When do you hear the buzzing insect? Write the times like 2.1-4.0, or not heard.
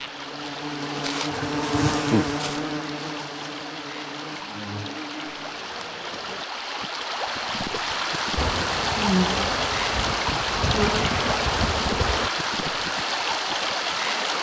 0.0-6.5, 8.3-12.3.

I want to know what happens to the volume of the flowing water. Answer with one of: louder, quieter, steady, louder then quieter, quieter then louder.
louder.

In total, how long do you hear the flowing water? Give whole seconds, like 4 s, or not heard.
14 s.